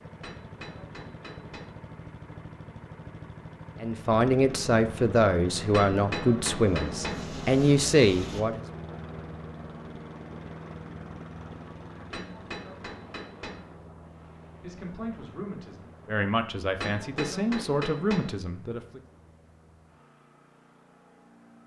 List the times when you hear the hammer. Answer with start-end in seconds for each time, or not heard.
0.2-1.8, 5.7-7.2, 12.1-13.7, 16.8-18.3.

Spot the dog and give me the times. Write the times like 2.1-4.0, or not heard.
not heard.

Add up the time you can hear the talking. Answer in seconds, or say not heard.
9 s.